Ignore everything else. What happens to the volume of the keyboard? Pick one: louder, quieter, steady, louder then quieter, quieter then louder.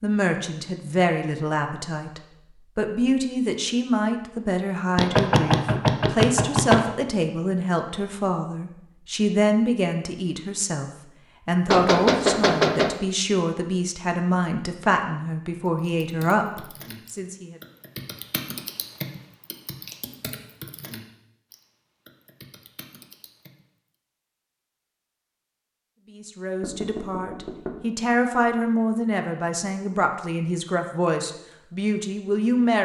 louder then quieter.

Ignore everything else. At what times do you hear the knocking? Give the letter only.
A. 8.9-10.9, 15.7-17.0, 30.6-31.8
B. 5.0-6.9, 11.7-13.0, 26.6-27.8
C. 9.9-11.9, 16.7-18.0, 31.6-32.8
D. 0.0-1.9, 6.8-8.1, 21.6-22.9
B.